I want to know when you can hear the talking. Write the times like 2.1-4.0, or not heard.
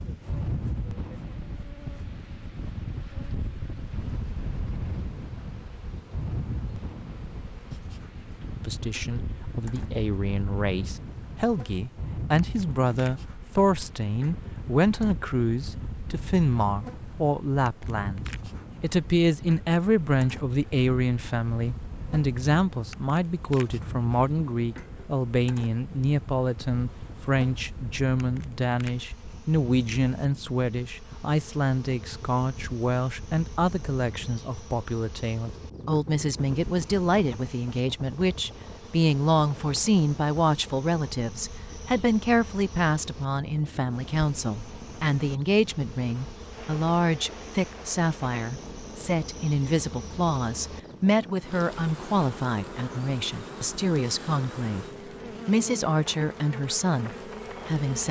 8.6-54.9, 55.5-58.0.